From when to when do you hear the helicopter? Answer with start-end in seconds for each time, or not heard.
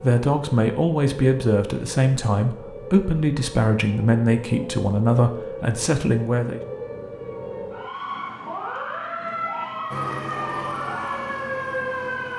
9.8-12.3.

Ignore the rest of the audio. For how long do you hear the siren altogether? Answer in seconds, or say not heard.
12 s.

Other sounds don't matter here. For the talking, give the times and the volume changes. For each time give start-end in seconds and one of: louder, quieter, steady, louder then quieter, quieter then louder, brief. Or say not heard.
0.0-6.6 steady.